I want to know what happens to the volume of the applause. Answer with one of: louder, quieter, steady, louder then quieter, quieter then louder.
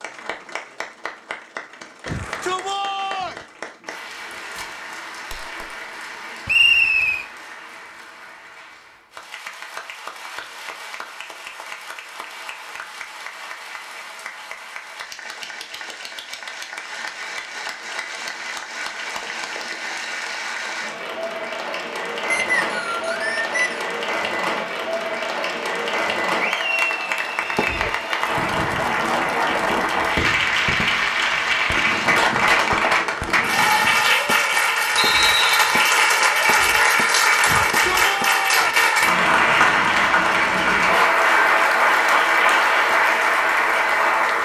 louder.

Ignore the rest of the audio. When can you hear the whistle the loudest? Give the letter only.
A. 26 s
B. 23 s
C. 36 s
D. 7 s
D.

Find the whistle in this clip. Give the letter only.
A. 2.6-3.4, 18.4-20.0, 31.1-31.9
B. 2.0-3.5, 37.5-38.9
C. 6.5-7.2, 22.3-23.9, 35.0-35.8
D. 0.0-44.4
C.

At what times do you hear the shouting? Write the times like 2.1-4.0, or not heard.
2.0-3.5, 37.5-38.9.